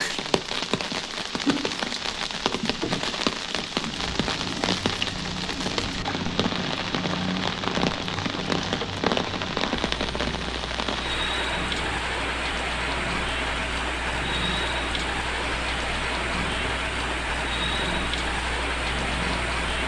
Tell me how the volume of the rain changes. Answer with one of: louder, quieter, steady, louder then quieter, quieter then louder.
steady.